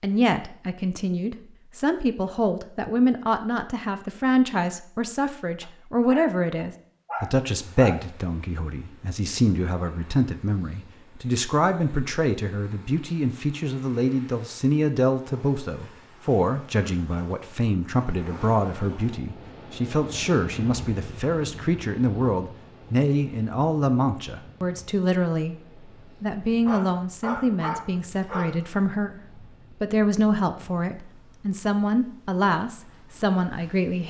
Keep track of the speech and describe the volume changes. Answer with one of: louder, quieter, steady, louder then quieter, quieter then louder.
steady.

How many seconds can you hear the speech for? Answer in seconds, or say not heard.
33 s.